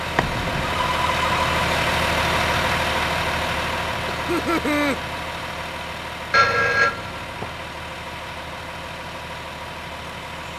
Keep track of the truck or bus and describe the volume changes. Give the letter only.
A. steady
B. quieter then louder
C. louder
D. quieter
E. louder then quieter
D.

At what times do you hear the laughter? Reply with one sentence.
You can hear the laughter from 4.2 to 5.0 s.